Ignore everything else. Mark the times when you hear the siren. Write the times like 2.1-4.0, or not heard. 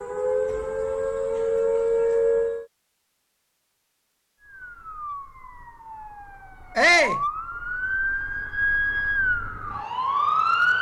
0.0-2.6, 4.4-10.7.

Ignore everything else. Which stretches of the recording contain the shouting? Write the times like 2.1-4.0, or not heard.
6.8-7.2.